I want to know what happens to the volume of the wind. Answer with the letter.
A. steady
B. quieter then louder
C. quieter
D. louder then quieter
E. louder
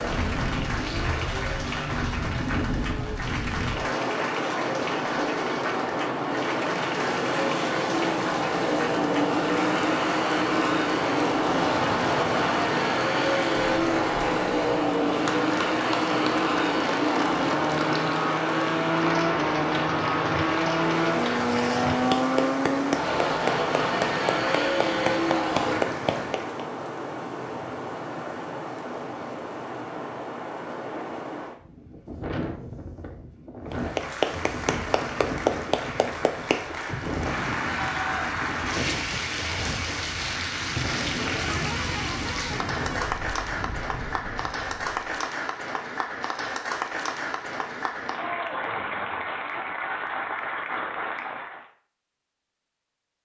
C.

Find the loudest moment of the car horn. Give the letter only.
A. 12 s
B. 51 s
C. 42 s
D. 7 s
C.